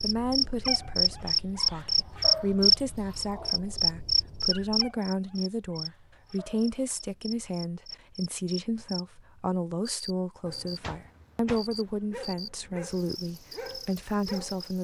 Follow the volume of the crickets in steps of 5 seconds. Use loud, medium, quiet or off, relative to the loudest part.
loud, quiet, quiet.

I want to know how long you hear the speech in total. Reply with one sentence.
The speech can be heard for 15 seconds in total.